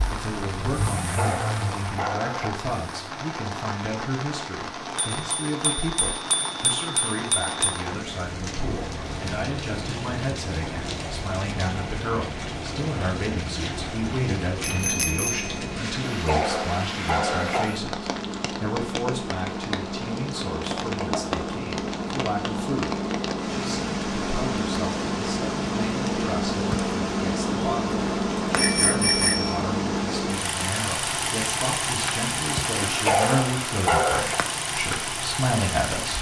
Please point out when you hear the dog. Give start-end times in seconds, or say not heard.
1.0-2.5, 16.1-17.8, 32.8-34.4.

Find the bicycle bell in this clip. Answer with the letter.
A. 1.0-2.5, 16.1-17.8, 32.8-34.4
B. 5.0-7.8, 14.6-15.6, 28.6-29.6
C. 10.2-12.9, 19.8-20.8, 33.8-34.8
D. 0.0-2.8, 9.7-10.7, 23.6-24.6
B.